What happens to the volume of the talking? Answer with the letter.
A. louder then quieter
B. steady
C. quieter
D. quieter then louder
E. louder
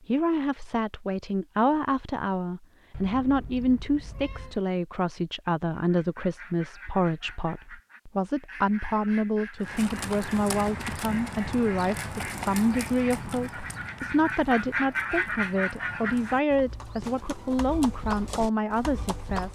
B.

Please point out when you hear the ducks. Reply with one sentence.
You can hear the ducks from 5.7 to 16.4 s.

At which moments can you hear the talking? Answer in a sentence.
The talking can be heard from 0.1 to 19.5 s.